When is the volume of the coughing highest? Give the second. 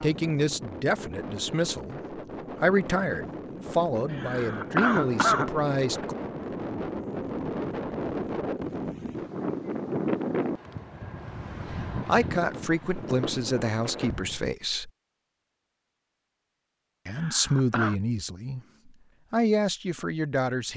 5 s.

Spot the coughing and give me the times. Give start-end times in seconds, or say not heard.
4.1-5.5, 17.1-17.9.